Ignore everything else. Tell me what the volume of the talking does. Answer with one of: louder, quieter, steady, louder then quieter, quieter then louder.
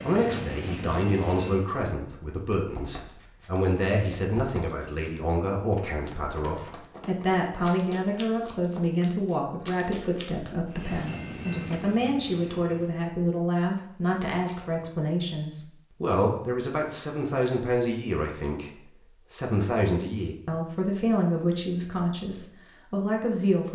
steady.